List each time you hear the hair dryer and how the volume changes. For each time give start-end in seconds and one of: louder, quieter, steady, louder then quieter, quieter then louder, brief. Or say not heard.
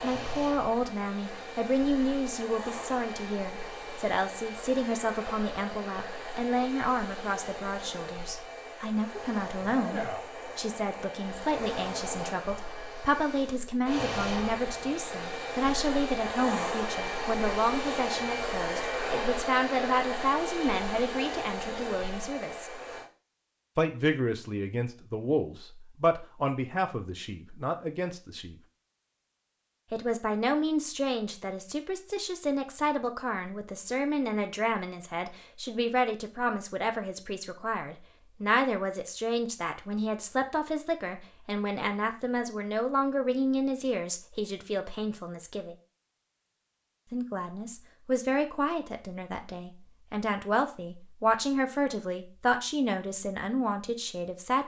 0.0-23.1 louder.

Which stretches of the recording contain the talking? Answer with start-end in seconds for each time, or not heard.
0.0-22.7, 23.8-28.6, 29.9-45.8, 47.1-54.6.